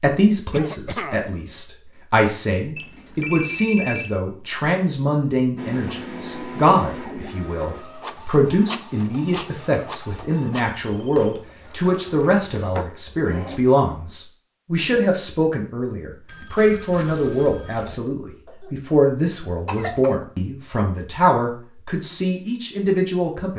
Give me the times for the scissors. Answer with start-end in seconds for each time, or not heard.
not heard.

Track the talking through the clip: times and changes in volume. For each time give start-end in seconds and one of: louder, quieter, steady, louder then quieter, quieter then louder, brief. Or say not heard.
0.0-23.5 steady.